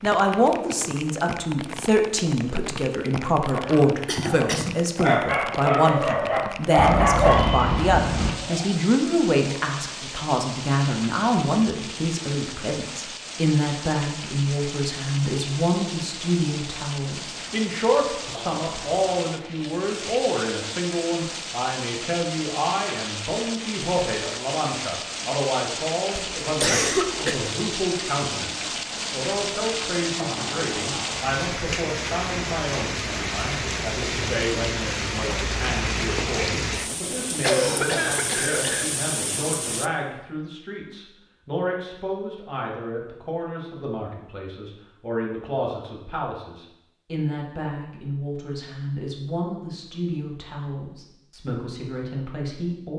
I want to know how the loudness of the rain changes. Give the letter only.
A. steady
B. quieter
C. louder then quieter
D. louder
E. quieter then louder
D.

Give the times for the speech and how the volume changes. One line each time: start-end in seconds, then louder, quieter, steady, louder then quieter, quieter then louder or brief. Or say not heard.
0.0-52.9 quieter.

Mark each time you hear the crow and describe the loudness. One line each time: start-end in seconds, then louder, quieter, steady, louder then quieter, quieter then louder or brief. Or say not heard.
not heard.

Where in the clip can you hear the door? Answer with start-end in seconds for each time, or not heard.
not heard.